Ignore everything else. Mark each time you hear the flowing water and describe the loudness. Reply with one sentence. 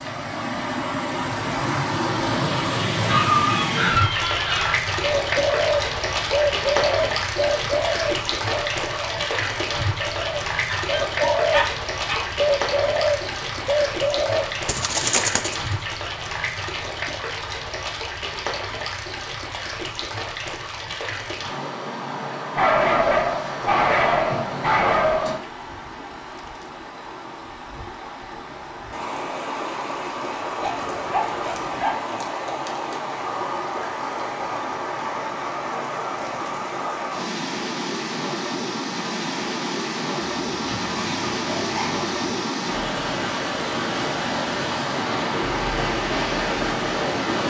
You can hear the flowing water from 0.0 to 47.4 s, getting quieter then louder.